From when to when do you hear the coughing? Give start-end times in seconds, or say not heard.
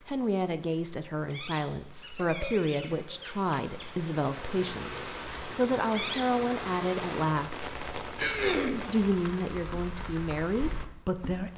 2.0-3.1, 8.2-8.8.